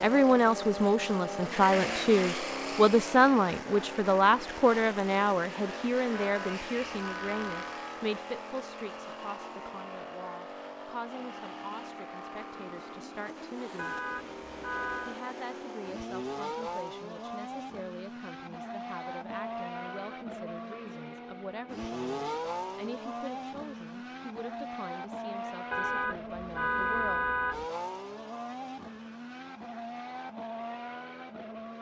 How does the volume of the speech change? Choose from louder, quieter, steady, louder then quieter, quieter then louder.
quieter.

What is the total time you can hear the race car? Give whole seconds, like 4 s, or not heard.
32 s.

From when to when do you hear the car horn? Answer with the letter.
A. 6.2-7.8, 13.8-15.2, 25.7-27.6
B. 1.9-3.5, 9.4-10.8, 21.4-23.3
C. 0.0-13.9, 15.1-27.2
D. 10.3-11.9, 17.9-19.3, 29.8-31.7
A.